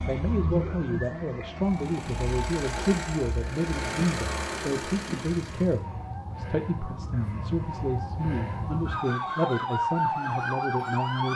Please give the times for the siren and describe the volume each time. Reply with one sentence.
You can hear the siren from 0.0 to 11.3 s, getting quieter then louder.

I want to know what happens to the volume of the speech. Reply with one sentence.
The loudness of the speech stays about the same.